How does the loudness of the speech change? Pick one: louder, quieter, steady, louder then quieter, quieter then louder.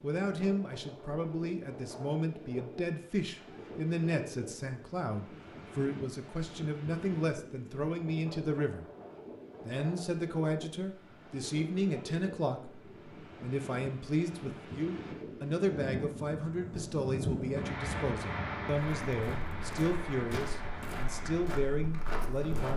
steady.